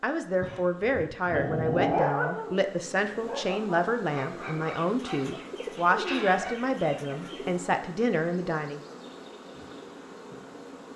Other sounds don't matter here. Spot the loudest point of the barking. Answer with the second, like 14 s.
2 s.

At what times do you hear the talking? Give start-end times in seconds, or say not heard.
0.0-8.8.